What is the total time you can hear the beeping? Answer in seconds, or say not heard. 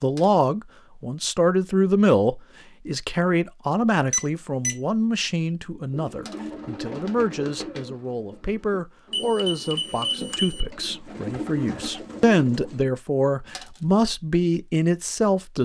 2 s.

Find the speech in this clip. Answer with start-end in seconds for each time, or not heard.
0.0-15.6.